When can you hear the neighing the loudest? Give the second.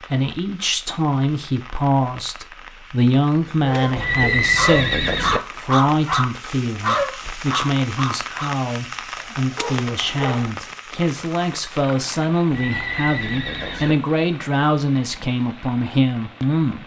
4 s.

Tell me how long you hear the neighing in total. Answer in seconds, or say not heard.
3 s.